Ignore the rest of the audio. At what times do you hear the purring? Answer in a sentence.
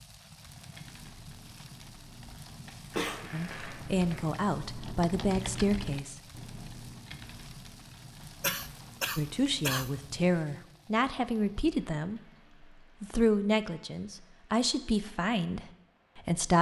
The purring can't be heard in this clip.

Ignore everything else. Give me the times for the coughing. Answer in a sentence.
You can hear the coughing from 2.5 to 3.3 s and from 8.4 to 9.9 s.